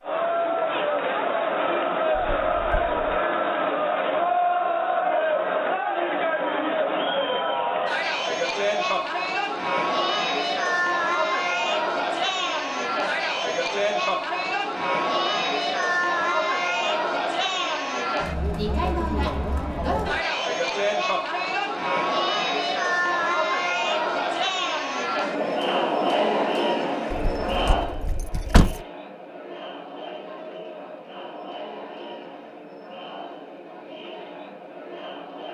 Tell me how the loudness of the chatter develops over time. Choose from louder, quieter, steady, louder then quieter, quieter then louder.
quieter.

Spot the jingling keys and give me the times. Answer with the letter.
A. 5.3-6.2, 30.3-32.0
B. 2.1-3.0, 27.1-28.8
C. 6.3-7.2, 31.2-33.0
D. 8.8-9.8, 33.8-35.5
B.